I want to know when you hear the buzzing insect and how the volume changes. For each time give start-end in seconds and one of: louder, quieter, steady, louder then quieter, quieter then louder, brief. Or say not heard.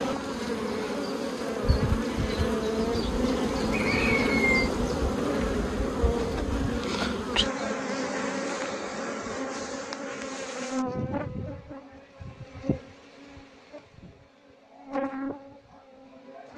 0.0-16.5 quieter.